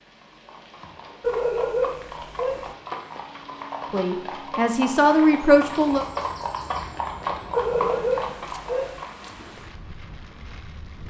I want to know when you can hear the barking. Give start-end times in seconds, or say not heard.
1.2-2.8, 7.5-9.1.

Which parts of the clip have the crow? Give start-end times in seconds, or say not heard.
not heard.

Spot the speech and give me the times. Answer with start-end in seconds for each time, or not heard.
3.9-6.0.